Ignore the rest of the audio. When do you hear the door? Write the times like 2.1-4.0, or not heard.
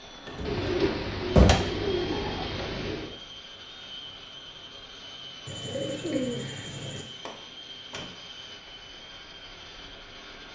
0.2-1.6, 7.2-8.2.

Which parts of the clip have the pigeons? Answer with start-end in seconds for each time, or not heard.
0.5-3.1, 5.5-7.0.